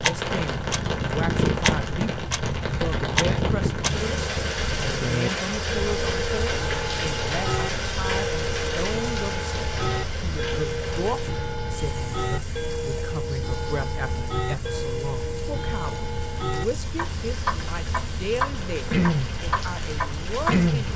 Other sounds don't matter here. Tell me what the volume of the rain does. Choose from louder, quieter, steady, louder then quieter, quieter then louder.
quieter then louder.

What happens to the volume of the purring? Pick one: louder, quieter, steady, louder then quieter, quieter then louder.
quieter.